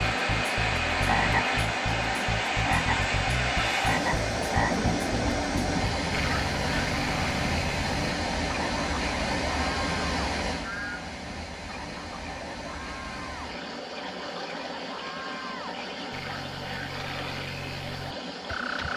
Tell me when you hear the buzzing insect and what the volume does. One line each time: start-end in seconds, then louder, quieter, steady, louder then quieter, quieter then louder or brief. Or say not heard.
not heard.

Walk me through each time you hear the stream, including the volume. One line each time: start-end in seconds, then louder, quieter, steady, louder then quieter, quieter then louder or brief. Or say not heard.
0.0-18.9 quieter.